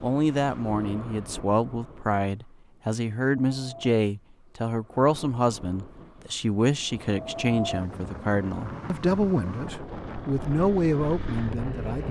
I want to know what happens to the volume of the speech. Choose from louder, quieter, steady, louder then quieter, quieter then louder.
steady.